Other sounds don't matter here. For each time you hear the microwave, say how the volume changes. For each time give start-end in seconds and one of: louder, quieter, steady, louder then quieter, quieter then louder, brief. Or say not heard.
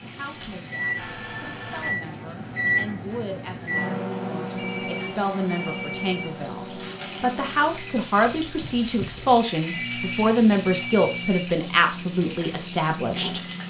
0.0-13.6 quieter.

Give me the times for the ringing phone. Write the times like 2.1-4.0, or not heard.
0.2-1.9, 4.5-6.3, 9.7-11.4.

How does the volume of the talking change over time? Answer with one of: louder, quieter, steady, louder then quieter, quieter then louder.
louder.